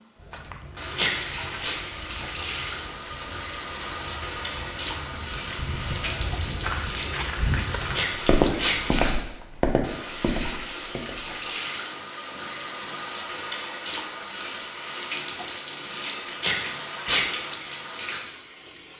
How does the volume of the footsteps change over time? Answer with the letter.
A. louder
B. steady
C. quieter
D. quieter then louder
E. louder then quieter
A.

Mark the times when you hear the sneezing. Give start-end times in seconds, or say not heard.
0.9-1.8, 8.0-8.8, 16.4-17.2.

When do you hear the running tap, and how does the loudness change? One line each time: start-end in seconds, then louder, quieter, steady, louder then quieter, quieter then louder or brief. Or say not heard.
0.0-18.9 steady.